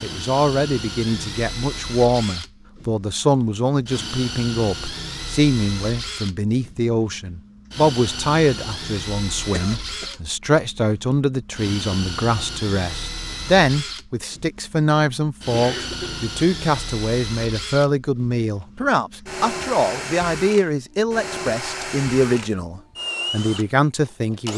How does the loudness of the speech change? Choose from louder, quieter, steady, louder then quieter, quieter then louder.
steady.